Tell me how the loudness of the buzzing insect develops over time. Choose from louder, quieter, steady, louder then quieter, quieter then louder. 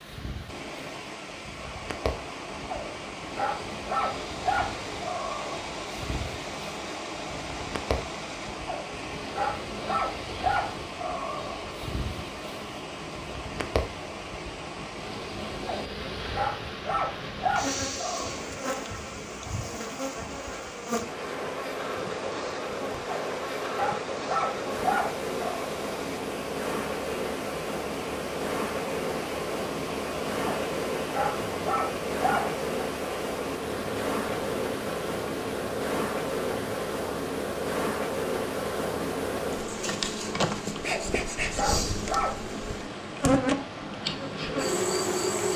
louder.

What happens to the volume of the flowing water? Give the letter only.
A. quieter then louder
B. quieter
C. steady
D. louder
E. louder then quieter
C.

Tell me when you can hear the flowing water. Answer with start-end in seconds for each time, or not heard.
0.0-45.5.